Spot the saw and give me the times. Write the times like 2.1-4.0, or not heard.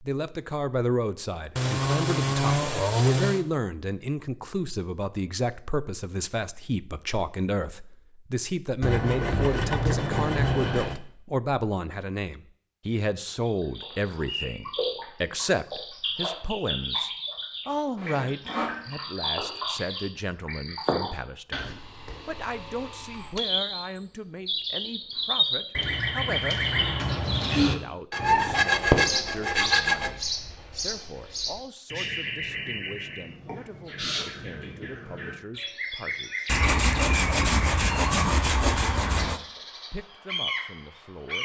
1.6-3.5, 8.8-11.0, 17.9-18.8, 21.6-23.4, 28.1-30.1, 36.5-39.4.